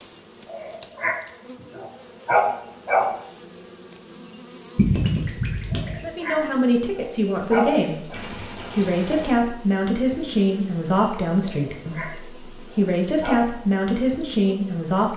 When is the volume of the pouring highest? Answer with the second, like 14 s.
5 s.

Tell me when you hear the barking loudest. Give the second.
2 s.